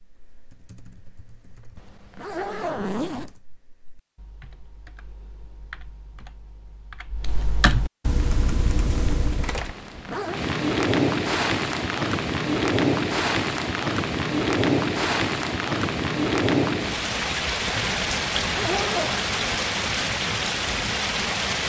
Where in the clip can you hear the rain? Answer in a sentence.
The rain can be heard from 8.2 to 21.6 s.